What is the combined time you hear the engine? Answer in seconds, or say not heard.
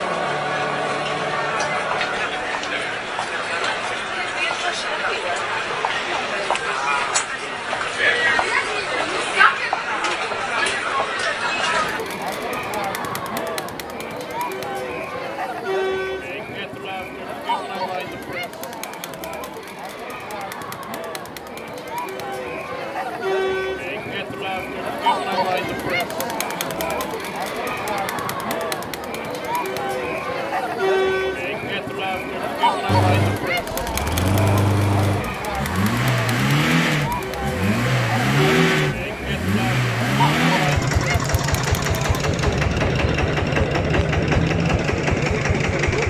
13 s.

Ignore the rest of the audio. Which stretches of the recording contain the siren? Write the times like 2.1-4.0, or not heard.
not heard.